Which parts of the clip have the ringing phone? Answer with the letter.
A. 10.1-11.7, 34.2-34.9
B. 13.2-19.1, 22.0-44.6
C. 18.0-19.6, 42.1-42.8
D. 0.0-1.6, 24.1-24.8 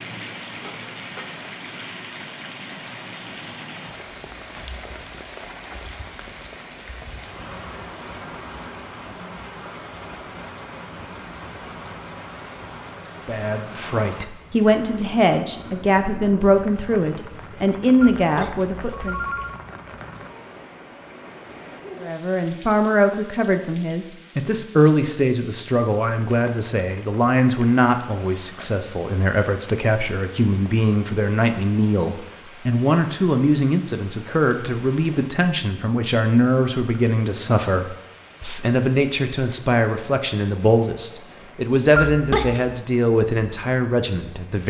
C.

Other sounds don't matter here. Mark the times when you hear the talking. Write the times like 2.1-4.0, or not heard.
13.2-19.1, 22.0-44.6.